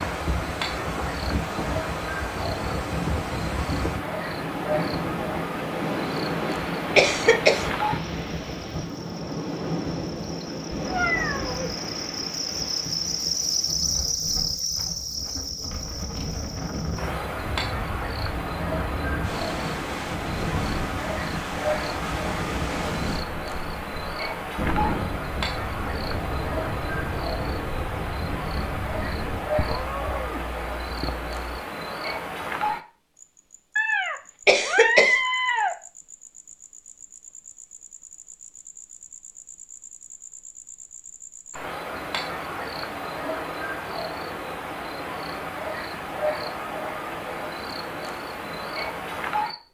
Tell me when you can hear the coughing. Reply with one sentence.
You can hear the coughing from 7.0 to 7.7 s and from 34.5 to 35.2 s.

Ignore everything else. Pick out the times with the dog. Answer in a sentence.
The dog can't be heard in this clip.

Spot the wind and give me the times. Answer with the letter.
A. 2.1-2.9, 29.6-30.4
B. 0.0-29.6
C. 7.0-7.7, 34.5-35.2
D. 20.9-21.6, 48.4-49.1
B.